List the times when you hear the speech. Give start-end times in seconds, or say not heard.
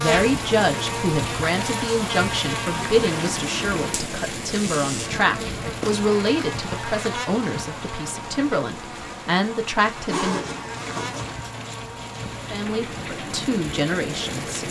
0.0-10.4, 12.5-14.6.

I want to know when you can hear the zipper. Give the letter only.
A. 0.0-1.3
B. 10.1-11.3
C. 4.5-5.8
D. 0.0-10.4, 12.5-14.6
B.